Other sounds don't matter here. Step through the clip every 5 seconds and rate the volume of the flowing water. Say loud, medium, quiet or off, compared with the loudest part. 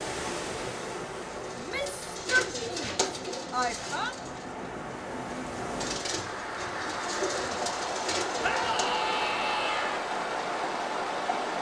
medium, loud, loud.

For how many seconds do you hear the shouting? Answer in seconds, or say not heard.
4 s.